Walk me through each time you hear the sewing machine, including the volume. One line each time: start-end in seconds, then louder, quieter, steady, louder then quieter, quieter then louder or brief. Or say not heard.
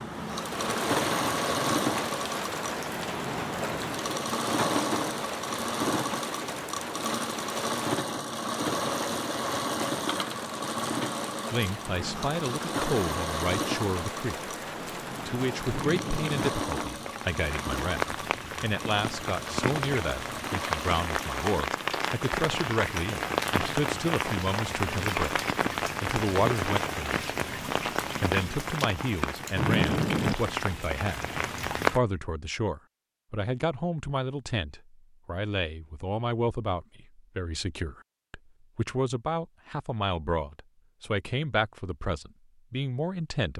0.0-21.6 quieter.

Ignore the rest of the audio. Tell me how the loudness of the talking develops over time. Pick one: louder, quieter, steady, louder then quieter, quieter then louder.
steady.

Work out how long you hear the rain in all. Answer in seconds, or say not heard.
32 s.